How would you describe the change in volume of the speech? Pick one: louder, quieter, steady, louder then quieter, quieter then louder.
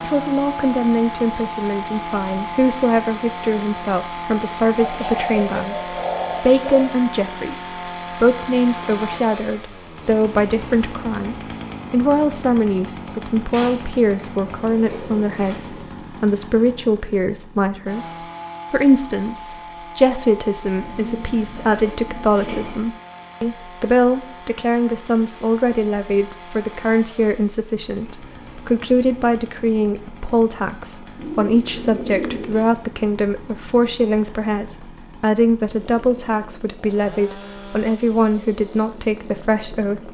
steady.